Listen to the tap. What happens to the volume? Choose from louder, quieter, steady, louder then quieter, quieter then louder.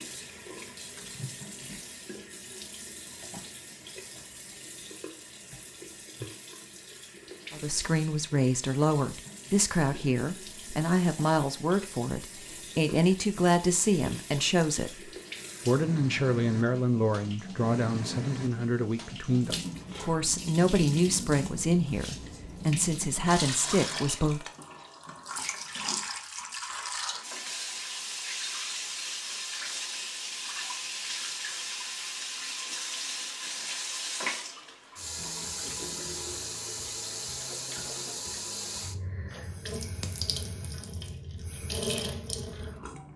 louder.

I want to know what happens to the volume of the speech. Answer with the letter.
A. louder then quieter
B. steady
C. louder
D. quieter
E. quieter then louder
B.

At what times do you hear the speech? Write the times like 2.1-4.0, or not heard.
7.5-24.4.